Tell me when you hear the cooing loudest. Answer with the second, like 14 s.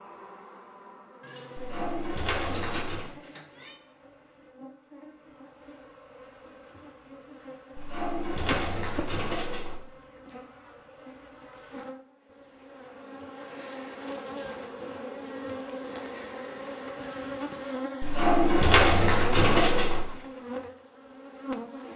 19 s.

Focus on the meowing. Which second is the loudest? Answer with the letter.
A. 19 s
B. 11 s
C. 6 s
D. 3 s
D.